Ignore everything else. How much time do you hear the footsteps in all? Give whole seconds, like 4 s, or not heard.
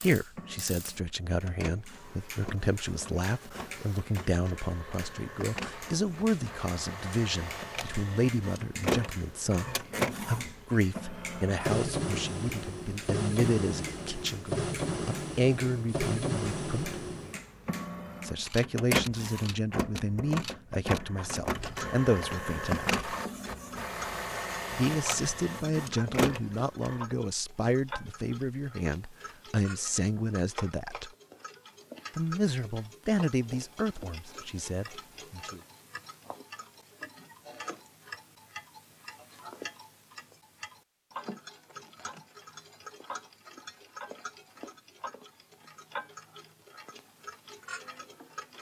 not heard.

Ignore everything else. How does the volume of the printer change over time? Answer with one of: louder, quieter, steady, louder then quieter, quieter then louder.
louder.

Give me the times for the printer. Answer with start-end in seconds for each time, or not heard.
0.0-27.0.